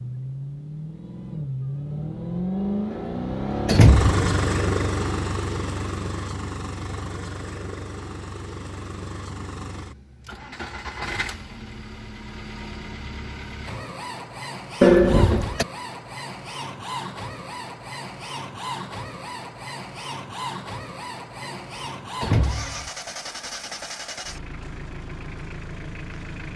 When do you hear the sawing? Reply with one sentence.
You can't hear the sawing here.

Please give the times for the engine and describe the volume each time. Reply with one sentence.
The engine can be heard from 0.0 to 26.5 s, getting quieter.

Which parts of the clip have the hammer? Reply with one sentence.
The hammer can't be heard in this clip.